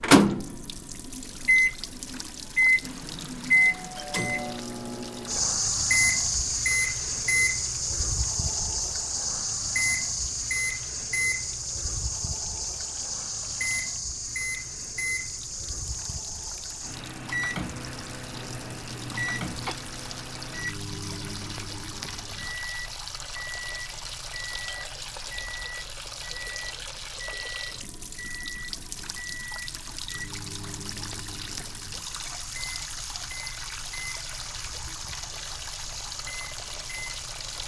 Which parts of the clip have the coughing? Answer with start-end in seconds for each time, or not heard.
18.3-19.8.